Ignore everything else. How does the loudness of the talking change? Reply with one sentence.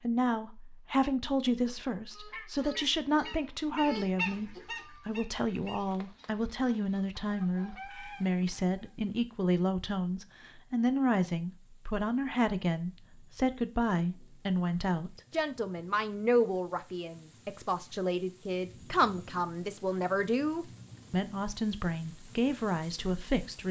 The volume of the talking stays about the same.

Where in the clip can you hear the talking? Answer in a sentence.
You can hear the talking from 0.0 to 23.6 s.